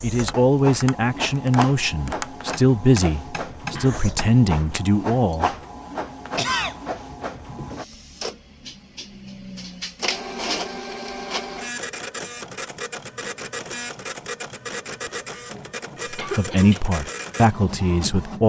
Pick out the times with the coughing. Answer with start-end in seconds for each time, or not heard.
3.8-4.2, 6.3-6.8, 16.1-16.8.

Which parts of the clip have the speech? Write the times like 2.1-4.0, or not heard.
0.0-5.5, 16.1-18.4.